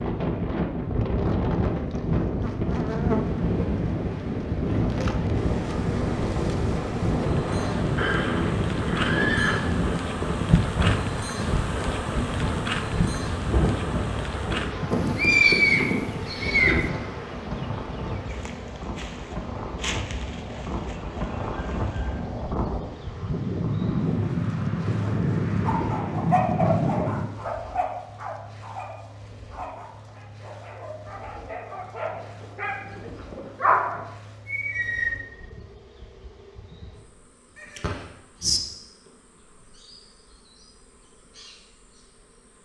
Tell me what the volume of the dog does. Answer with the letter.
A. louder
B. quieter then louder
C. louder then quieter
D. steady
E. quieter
B.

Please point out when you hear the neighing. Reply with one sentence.
The neighing can be heard from 8.0 to 9.6 s, from 14.9 to 16.9 s and from 37.8 to 38.6 s.